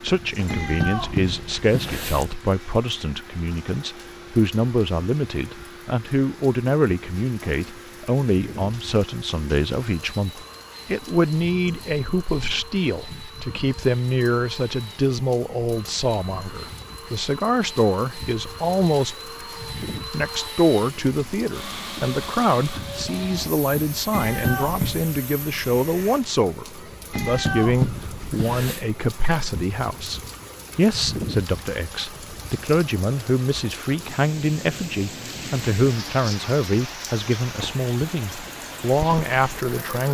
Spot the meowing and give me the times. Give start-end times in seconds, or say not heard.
0.5-2.4, 24.1-25.1, 27.1-28.9.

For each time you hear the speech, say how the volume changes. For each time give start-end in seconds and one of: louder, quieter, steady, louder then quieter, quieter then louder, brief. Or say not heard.
0.0-19.3 steady
20.1-40.0 steady.